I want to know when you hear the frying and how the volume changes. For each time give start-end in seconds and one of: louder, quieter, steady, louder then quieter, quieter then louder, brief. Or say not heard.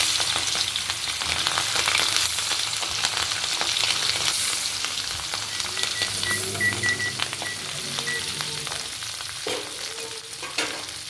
0.0-11.0 quieter.